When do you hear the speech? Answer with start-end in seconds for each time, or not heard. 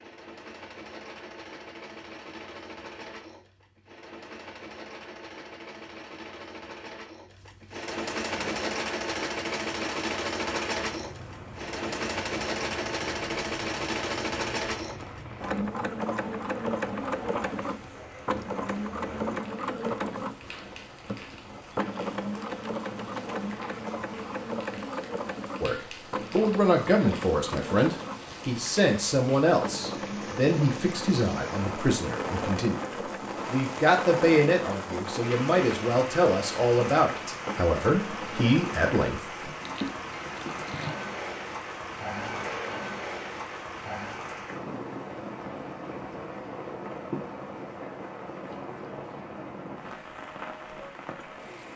25.6-39.2.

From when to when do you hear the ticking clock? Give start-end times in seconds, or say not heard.
not heard.